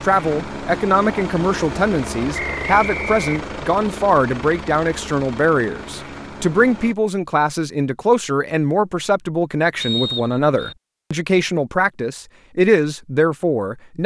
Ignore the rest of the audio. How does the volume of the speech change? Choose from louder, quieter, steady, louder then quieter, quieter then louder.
steady.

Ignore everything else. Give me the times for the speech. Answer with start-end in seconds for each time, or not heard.
0.0-14.0.